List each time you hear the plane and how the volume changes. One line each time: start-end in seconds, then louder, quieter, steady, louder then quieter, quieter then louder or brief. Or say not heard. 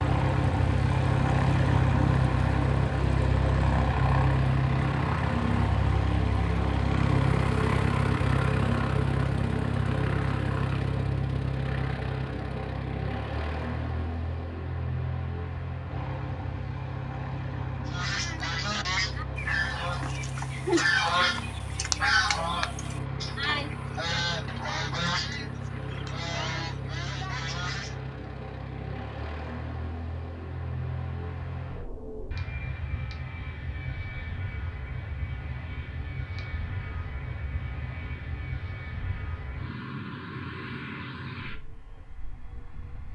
0.0-43.1 quieter.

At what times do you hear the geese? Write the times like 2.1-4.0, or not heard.
17.9-28.0.